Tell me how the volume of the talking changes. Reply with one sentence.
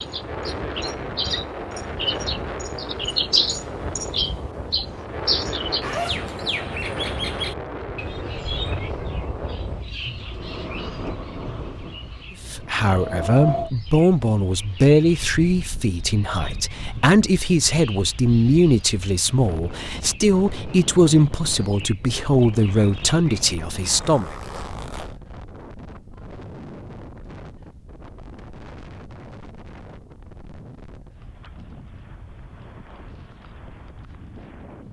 The volume of the talking stays about the same.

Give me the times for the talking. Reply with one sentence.
You can hear the talking from 12.4 to 24.3 s.